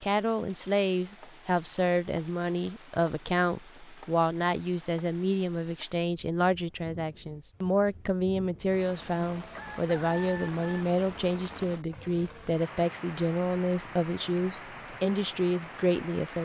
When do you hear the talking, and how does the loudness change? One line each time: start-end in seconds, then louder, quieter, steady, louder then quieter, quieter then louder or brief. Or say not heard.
0.0-16.4 steady.